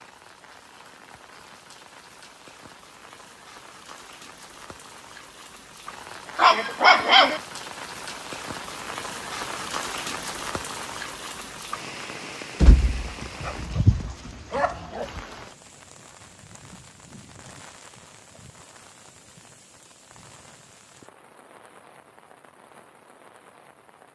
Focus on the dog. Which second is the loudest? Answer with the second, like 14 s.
7 s.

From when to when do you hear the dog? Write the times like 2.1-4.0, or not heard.
6.3-7.4, 12.6-15.1.